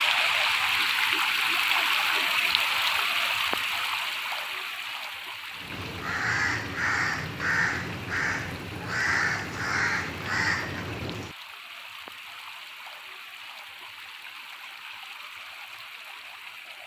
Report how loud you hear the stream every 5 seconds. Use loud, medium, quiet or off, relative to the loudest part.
loud, quiet, quiet, quiet.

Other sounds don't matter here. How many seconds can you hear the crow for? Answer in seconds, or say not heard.
6 s.